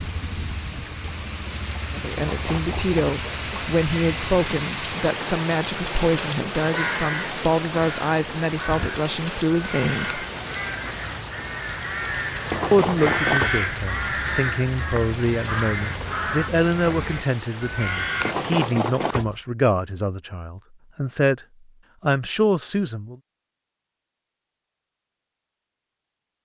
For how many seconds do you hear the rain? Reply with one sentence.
You can hear the rain for 19 seconds altogether.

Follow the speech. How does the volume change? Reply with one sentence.
The volume of the speech stays about the same.